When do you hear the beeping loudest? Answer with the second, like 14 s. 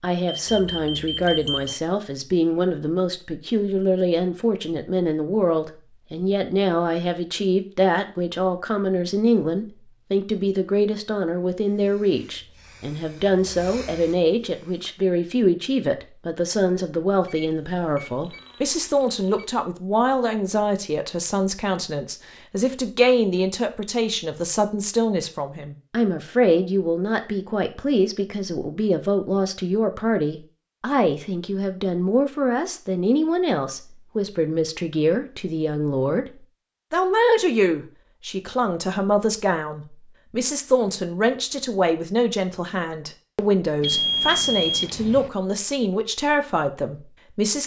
44 s.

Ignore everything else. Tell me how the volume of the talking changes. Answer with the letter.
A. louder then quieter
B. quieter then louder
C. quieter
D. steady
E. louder
D.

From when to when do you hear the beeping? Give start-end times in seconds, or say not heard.
0.2-1.8, 17.2-19.6, 43.8-45.3.